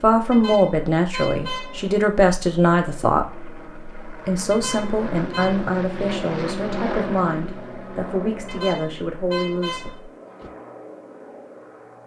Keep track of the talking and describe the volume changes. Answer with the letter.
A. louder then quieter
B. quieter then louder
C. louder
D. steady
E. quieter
E.